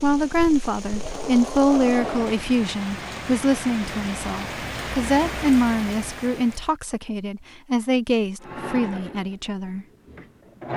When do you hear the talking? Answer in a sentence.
You can hear the talking from 0.0 to 9.8 s.